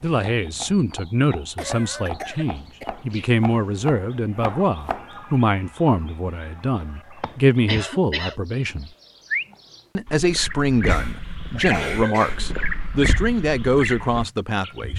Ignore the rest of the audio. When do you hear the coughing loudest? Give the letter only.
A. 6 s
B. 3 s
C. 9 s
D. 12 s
D.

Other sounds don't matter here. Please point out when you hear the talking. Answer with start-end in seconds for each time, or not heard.
0.0-8.9, 9.9-14.9.